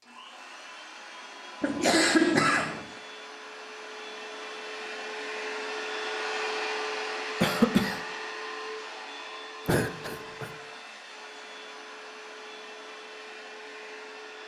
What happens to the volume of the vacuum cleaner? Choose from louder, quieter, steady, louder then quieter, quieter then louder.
louder then quieter.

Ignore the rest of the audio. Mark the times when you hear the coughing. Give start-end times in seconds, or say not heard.
1.6-2.9, 7.4-8.0, 9.7-10.5.